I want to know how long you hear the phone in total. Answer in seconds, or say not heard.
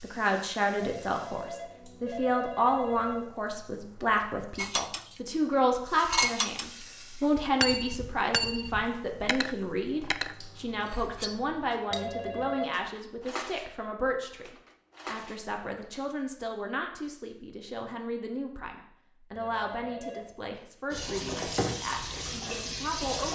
4 s.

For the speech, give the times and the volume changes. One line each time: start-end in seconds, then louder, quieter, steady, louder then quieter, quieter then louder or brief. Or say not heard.
0.0-23.2 quieter.